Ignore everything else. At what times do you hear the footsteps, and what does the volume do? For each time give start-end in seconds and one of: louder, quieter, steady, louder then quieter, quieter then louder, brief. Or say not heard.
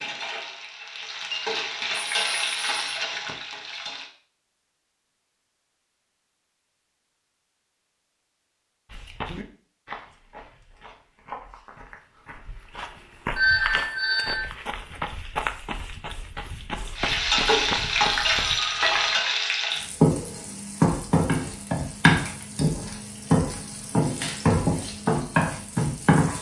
8.9-18.6 louder.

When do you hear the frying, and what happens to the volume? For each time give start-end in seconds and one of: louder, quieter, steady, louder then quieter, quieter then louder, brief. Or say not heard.
0.0-4.1 louder then quieter
16.9-26.3 steady.